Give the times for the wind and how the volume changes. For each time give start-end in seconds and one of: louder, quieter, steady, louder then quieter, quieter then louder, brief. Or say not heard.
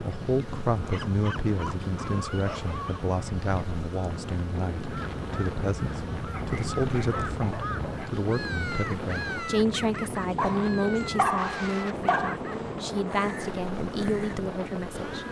0.0-15.2 steady.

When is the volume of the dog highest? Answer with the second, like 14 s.
11 s.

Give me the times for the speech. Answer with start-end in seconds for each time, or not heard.
0.0-15.2.